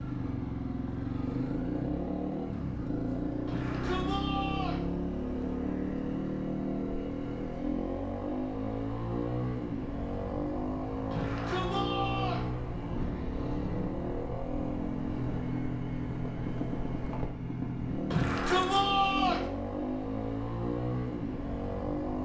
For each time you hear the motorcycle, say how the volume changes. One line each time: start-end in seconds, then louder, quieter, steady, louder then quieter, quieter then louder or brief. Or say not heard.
0.0-22.2 steady.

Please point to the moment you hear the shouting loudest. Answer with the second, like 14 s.
19 s.